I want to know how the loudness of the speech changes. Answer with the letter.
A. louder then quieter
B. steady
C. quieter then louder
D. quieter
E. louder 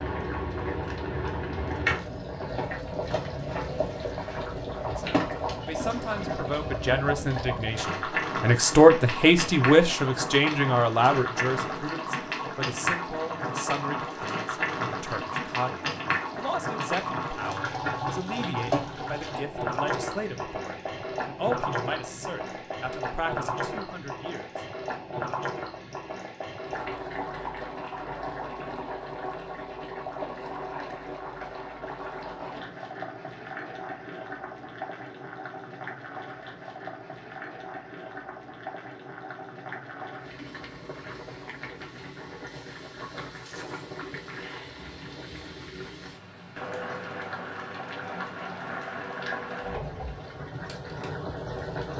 D.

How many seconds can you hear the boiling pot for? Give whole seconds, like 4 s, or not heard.
52 s.